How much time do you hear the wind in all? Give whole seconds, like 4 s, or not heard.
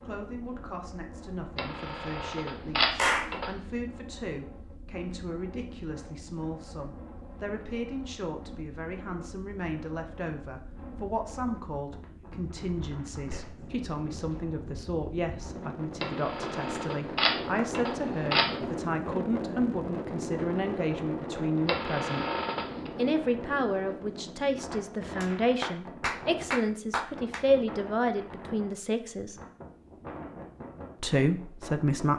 32 s.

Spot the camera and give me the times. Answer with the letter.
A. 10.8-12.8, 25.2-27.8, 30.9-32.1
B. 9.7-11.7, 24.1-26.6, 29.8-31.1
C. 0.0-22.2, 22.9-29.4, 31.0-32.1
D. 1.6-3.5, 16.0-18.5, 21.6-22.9
D.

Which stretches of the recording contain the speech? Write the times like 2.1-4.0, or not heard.
0.0-22.2, 22.9-29.4, 31.0-32.1.